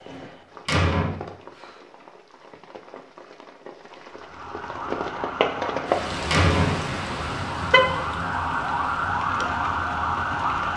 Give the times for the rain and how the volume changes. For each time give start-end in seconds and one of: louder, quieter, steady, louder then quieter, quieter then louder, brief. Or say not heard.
0.0-10.7 louder then quieter.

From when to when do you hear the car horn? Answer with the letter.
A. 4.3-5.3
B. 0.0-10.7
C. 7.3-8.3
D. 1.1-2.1
C.